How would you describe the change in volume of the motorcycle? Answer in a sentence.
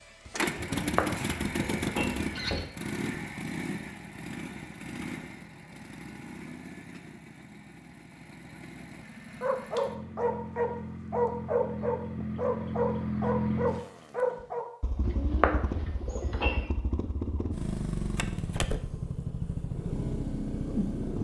The volume of the motorcycle goes down, then up.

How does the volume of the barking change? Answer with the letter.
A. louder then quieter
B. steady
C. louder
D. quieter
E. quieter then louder
B.